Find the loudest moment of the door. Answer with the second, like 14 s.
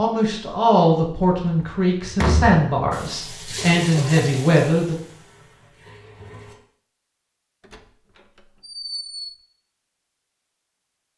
2 s.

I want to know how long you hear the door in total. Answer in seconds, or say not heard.
3 s.